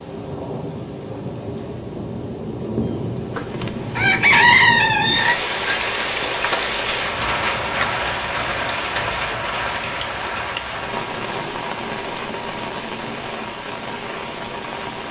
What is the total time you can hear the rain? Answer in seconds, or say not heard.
15 s.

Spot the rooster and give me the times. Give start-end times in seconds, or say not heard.
3.4-5.3.